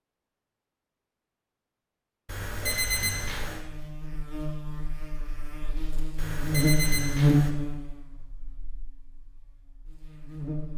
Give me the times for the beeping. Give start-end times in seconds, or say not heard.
2.2-3.6, 6.2-7.5.